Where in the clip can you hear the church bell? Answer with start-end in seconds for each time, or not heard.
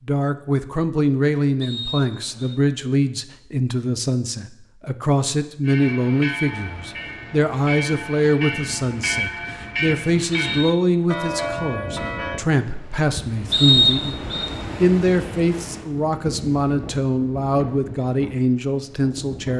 5.7-12.4.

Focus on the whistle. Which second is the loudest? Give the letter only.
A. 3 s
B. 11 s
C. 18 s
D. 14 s
D.